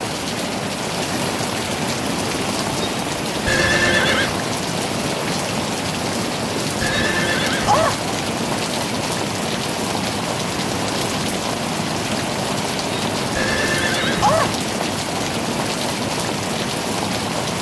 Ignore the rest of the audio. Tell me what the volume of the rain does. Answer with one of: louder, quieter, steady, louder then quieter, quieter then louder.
steady.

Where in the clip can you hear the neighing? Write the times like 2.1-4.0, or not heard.
3.5-4.3, 6.8-8.1, 13.3-14.6.